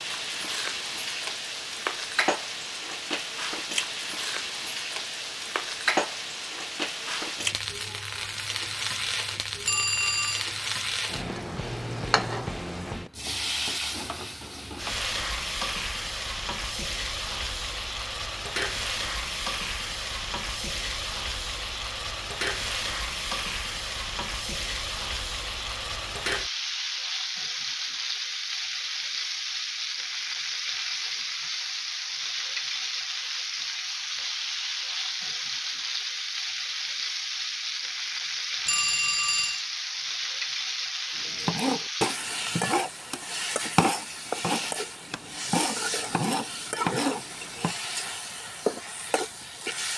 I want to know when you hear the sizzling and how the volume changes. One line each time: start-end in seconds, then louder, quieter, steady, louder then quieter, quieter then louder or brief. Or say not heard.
0.0-49.9 steady.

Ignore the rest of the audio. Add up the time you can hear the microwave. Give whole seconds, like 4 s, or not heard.
not heard.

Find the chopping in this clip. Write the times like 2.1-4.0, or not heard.
41.2-47.8.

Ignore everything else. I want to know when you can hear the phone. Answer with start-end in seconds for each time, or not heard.
9.7-10.5, 38.6-39.6.